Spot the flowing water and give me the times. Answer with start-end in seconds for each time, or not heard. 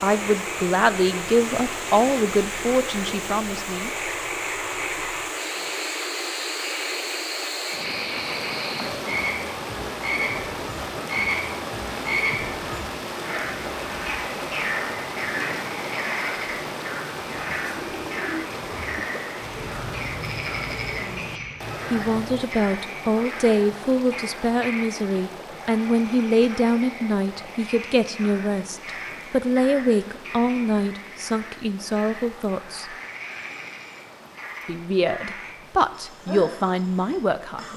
0.0-37.7.